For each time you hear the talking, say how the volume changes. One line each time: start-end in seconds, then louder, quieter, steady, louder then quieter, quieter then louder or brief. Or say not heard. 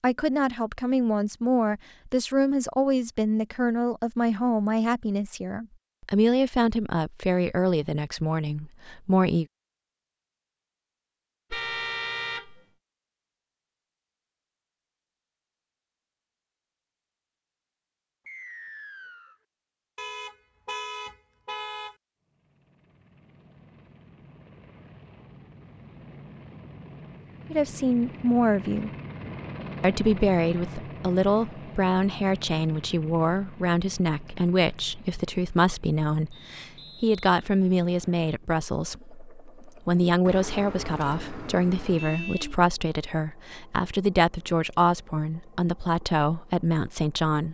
0.0-9.4 steady
27.5-28.9 brief
29.8-47.4 steady.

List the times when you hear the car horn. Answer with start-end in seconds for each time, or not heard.
11.5-12.7, 19.9-21.9, 40.2-42.6.